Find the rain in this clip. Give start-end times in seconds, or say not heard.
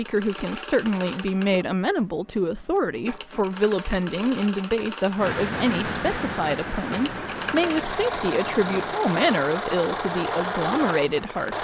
5.2-11.5.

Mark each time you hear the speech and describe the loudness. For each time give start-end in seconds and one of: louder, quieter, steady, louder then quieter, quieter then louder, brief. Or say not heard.
0.0-11.5 steady.